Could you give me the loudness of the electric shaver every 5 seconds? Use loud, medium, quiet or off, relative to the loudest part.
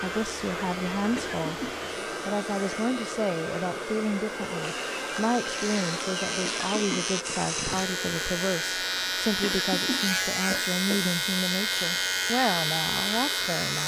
quiet, loud, loud.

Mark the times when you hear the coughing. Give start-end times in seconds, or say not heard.
1.1-1.8, 6.4-7.1, 9.4-11.2.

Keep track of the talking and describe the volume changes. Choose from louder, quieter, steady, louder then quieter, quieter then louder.
steady.